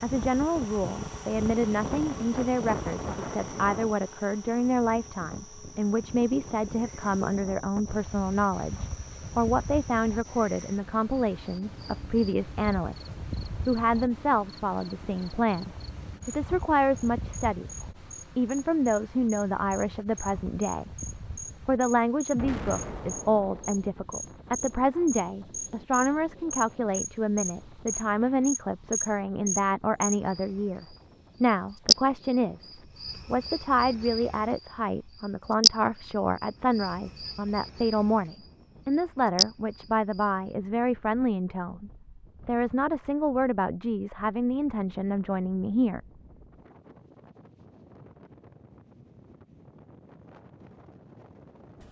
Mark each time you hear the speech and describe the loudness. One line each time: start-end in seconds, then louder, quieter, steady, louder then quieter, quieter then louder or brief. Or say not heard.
0.0-17.6 steady
18.4-32.7 steady
33.3-46.0 steady.